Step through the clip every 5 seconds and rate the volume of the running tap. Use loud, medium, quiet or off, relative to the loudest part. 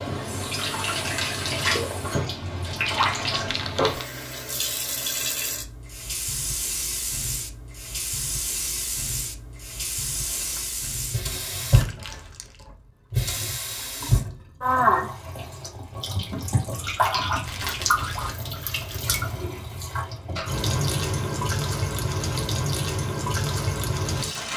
loud, medium, loud, loud, loud.